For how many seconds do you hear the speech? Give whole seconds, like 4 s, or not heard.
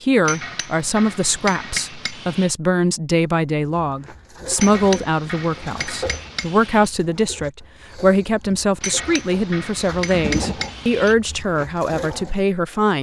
13 s.